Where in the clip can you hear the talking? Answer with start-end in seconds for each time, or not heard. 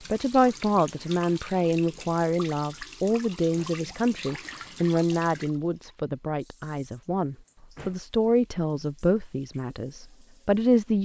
0.1-10.9.